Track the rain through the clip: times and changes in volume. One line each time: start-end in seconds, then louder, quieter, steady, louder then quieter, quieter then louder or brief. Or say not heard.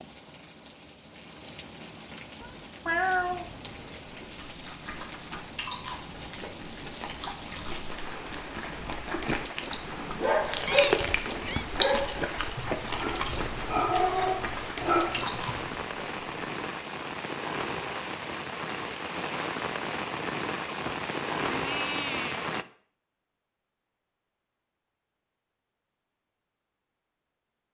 0.0-22.6 louder.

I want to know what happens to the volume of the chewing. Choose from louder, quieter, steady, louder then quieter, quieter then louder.
louder then quieter.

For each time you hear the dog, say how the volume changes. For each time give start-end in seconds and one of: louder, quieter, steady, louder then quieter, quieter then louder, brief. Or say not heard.
9.9-15.8 quieter then louder.